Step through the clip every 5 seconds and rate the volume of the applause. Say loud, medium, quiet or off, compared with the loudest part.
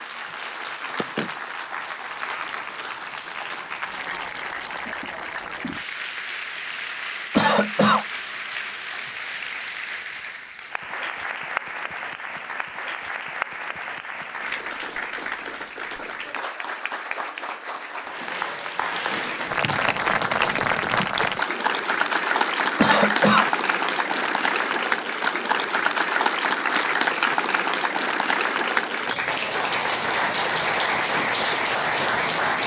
medium, medium, medium, medium, loud, loud, loud.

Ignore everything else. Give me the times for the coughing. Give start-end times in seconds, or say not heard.
7.3-8.1, 22.8-23.5.